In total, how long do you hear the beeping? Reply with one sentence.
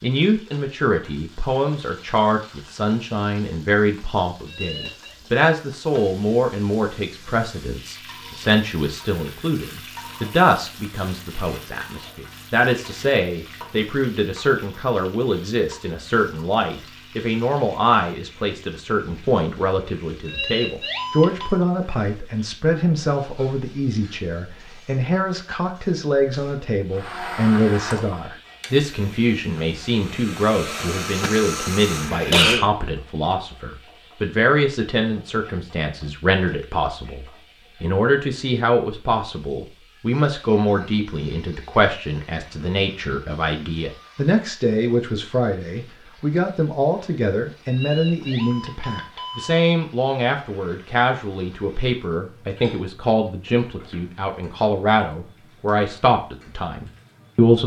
You can hear the beeping for 4 seconds altogether.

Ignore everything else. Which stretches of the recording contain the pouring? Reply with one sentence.
You can't hear the pouring here.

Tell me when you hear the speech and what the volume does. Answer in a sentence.
You can hear the speech from 0.0 to 57.6 s, at a steady volume.